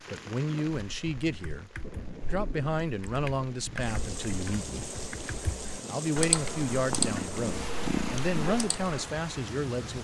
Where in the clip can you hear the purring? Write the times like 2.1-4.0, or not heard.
6.7-8.3.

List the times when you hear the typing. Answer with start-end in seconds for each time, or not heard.
0.7-9.0.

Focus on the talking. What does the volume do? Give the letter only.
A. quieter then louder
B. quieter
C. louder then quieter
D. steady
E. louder
D.